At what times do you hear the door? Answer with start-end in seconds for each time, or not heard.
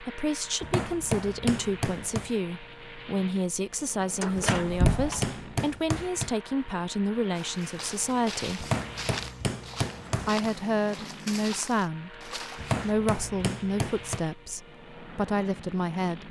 4.2-5.3.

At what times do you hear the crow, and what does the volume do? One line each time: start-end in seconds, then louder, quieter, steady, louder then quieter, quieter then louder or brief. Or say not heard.
not heard.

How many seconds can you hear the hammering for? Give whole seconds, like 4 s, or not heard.
7 s.